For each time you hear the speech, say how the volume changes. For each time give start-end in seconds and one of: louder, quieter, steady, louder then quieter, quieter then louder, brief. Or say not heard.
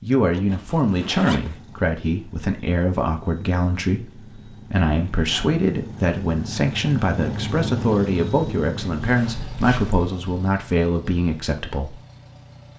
0.0-11.9 steady.